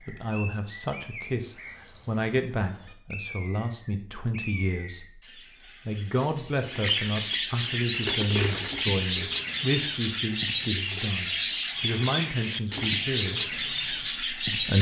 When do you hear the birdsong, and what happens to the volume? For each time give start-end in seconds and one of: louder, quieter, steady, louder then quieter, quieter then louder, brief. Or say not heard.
0.0-14.7 louder.